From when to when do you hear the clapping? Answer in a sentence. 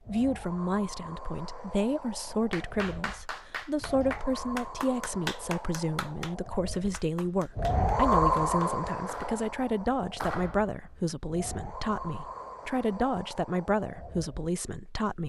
You can hear the clapping from 2.5 to 11.1 s.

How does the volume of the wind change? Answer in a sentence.
The loudness of the wind goes up, then down.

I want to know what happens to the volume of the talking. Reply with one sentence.
The volume of the talking stays about the same.